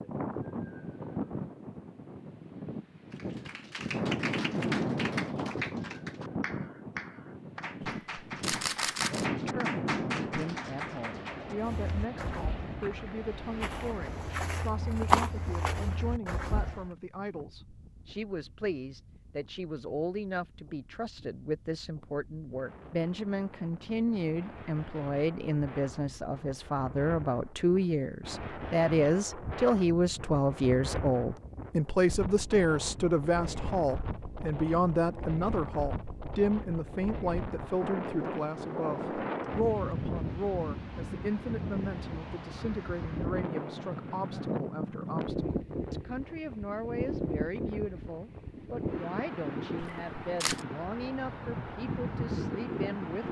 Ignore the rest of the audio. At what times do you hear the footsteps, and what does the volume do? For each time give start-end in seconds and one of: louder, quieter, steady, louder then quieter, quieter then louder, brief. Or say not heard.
11.6-16.9 louder then quieter.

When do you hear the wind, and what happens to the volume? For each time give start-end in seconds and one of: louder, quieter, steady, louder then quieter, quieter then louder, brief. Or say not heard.
0.0-53.2 quieter then louder.